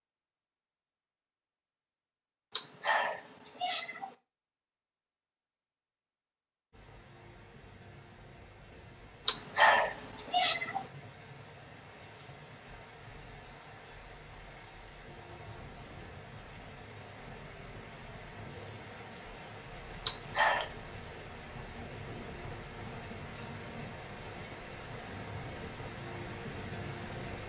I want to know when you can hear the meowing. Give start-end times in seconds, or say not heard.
2.5-4.1, 9.2-10.8, 20.0-20.7.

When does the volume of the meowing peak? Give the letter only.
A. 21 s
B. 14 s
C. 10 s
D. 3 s
C.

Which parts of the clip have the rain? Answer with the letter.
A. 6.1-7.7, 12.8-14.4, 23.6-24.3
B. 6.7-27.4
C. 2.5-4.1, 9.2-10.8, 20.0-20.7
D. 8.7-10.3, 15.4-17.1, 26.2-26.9
B.